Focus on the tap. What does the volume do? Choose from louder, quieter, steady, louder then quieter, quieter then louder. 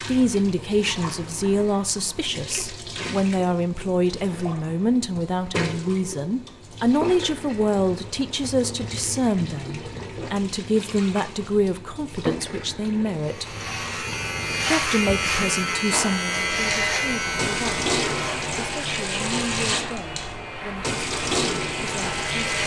louder.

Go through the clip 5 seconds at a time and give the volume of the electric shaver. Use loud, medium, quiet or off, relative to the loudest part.
off, off, loud, loud, medium.